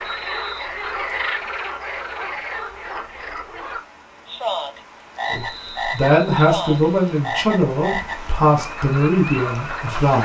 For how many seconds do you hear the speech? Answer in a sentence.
You can hear the speech for 5 seconds altogether.